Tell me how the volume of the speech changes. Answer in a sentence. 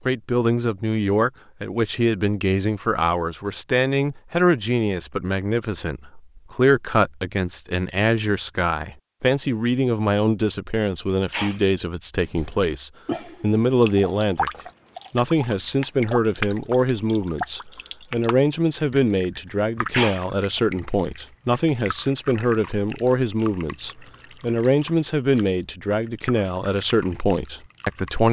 The volume of the speech stays about the same.